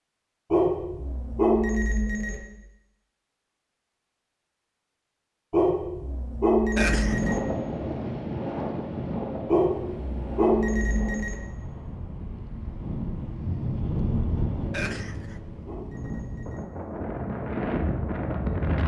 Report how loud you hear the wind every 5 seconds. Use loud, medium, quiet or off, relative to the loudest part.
off, loud, loud, loud.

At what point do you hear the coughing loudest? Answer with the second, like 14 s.
7 s.